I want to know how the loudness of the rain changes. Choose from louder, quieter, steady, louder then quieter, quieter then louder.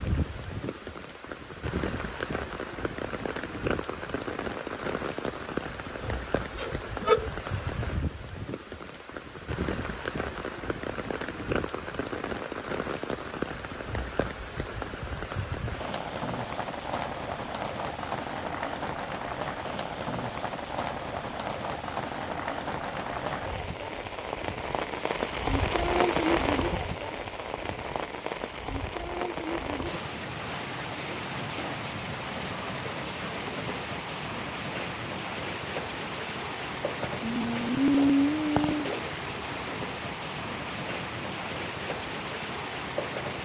steady.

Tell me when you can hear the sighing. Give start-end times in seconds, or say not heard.
6.0-7.3, 37.1-38.9.